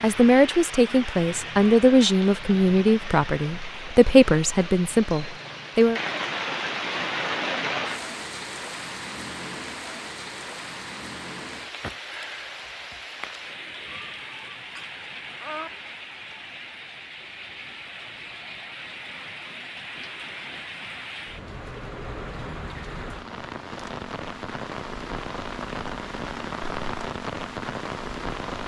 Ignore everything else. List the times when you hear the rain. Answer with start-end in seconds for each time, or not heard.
0.0-28.6.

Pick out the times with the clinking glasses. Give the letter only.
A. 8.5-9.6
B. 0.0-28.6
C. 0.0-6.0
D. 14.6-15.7
D.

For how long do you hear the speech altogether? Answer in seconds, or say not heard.
6 s.